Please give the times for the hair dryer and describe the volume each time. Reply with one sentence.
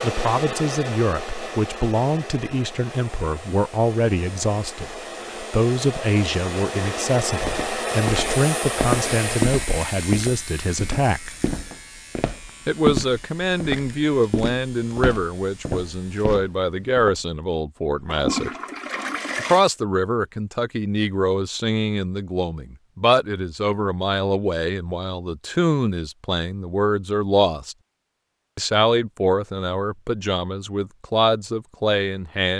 You can hear the hair dryer from 0.0 to 9.5 s, getting quieter then louder.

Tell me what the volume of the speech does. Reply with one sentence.
The volume of the speech stays about the same.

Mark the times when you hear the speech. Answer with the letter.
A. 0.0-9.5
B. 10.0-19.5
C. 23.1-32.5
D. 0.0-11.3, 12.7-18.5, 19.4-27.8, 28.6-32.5
D.